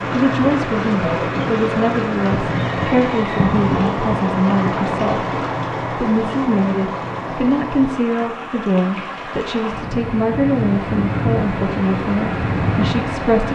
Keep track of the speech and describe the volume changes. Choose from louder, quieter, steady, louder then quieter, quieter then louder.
steady.